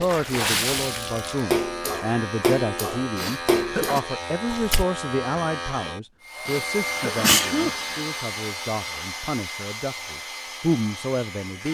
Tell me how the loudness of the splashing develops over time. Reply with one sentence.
The volume of the splashing goes down.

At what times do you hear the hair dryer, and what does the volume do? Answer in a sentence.
You can hear the hair dryer from 6.2 to 11.6 s, getting quieter.